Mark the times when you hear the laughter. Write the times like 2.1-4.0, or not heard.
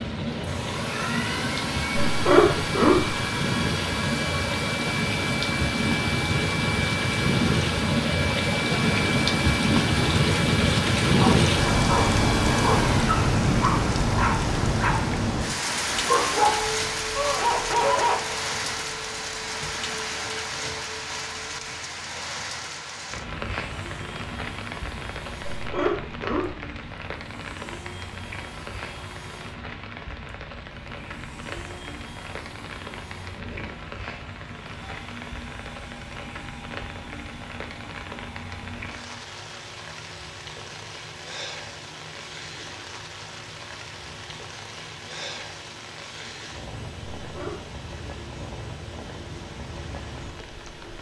2.0-3.2, 25.6-26.6, 47.2-47.6.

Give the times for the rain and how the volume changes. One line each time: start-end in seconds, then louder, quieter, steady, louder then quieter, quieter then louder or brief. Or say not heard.
0.0-50.9 quieter.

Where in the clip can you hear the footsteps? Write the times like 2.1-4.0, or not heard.
not heard.